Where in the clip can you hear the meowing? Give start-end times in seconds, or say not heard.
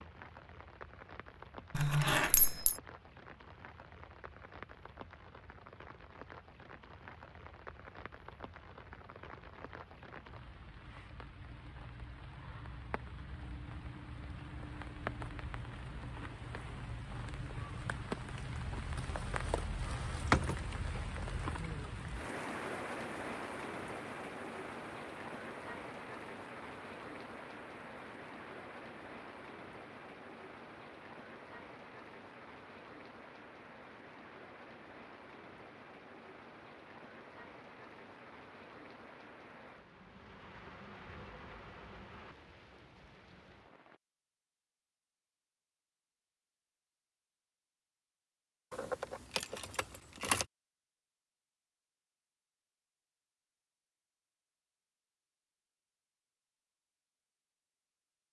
not heard.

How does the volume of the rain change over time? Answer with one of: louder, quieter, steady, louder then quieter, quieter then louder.
louder then quieter.